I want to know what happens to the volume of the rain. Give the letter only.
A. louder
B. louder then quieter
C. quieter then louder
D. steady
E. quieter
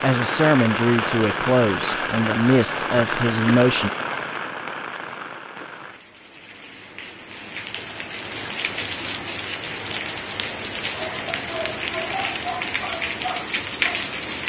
C.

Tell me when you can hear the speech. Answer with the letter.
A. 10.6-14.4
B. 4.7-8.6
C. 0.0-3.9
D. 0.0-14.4
C.